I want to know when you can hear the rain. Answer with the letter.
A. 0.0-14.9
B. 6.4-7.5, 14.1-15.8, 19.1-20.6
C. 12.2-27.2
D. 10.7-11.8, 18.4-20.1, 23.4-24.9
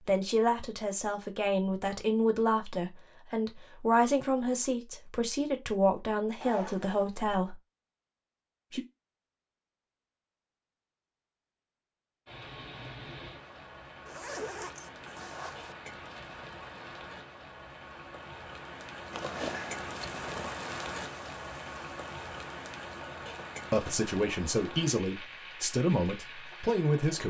C.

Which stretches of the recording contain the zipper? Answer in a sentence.
You can hear the zipper from 6.4 to 7.5 s, from 14.1 to 15.8 s and from 19.1 to 20.6 s.